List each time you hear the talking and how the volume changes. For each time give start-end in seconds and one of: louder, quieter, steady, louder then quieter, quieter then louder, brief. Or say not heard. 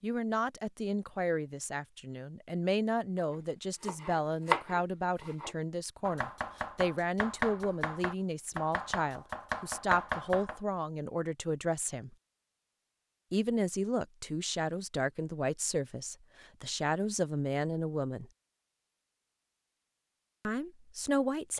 0.0-12.2 steady
13.3-18.2 steady
20.4-21.5 brief.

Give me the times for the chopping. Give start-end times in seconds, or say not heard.
3.4-10.6.